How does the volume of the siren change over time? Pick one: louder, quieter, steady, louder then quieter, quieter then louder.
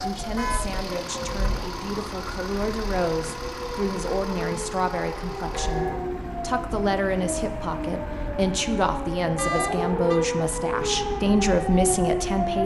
louder.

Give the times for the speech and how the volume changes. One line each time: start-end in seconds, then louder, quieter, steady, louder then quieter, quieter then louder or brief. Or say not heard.
0.0-12.6 louder.